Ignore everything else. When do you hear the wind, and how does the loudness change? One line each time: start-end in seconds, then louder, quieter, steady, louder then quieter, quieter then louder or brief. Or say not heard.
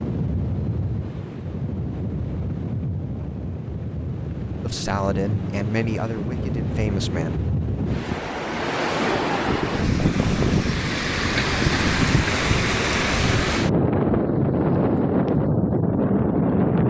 0.0-16.8 louder.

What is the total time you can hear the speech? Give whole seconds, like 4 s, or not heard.
3 s.